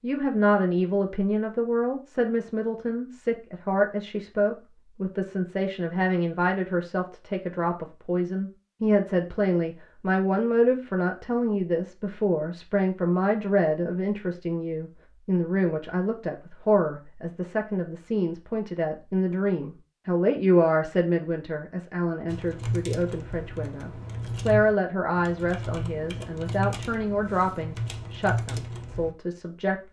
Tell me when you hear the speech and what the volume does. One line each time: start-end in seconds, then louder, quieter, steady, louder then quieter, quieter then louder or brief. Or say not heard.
0.0-29.8 steady.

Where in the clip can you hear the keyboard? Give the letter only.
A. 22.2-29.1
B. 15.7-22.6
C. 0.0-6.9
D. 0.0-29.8
A.